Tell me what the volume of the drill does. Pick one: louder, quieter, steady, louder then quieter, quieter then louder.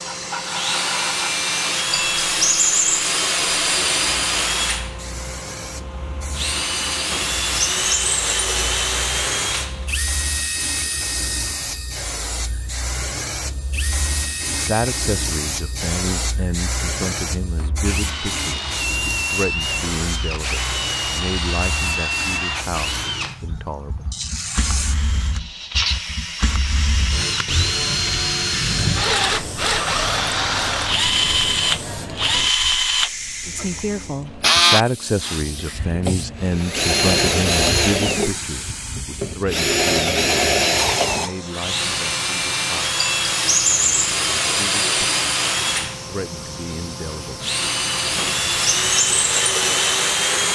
quieter then louder.